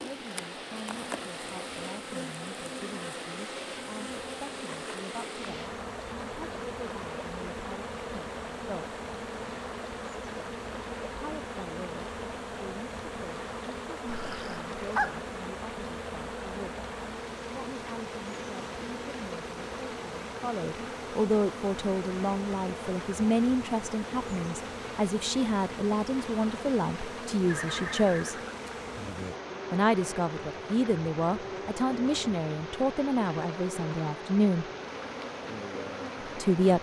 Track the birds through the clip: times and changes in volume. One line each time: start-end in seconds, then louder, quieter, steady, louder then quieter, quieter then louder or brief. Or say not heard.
not heard.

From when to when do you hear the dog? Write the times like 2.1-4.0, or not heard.
14.1-15.2.